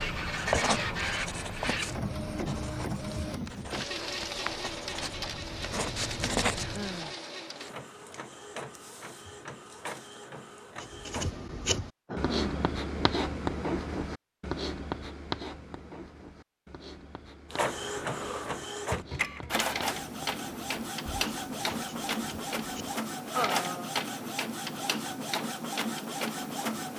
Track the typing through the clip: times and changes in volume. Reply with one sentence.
You can't hear the typing here.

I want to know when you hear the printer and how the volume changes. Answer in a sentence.
The printer can be heard from 0.0 to 11.3 s, getting quieter; and from 17.5 to 26.9 s, at a steady volume.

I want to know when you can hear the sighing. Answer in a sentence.
You can hear the sighing from 6.5 to 7.2 s, from 12.1 to 13.2 s and from 23.3 to 23.9 s.